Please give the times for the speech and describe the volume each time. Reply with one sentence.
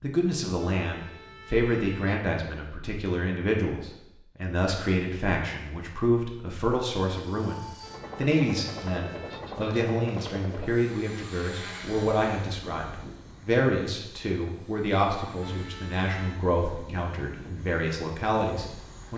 The speech can be heard from 0.0 to 19.1 s, at a steady volume.